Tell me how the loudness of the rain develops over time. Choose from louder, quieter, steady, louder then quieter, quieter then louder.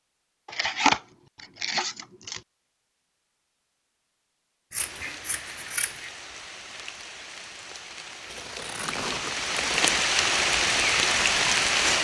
louder.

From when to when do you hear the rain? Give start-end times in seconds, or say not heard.
4.8-11.9.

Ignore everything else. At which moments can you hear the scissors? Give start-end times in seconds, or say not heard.
0.5-2.4, 4.7-6.1, 8.3-10.1.